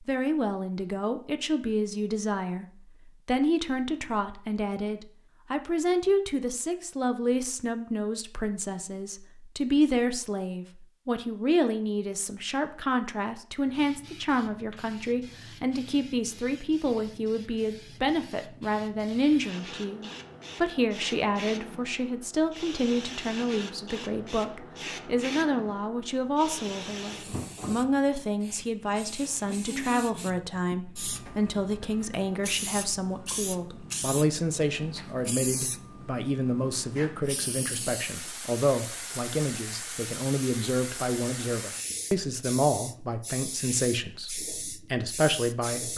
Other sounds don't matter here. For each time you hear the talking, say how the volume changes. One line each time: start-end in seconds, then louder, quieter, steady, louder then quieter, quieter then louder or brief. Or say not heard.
0.1-45.9 steady.